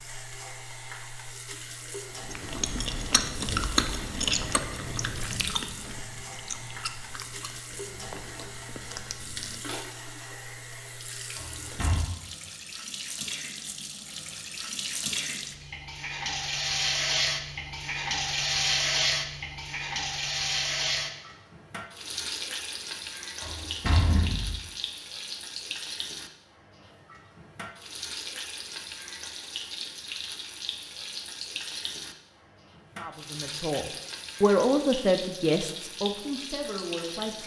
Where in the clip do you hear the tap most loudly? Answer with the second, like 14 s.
19 s.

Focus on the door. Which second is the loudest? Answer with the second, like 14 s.
24 s.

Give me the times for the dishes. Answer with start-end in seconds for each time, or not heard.
not heard.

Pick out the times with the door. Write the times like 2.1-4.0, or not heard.
11.3-12.1, 23.4-24.6.